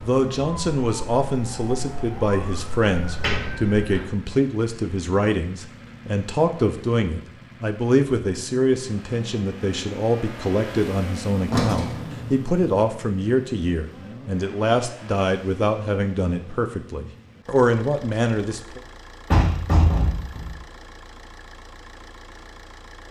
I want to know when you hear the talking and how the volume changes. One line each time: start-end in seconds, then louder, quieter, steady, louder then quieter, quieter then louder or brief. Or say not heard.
0.0-18.8 steady.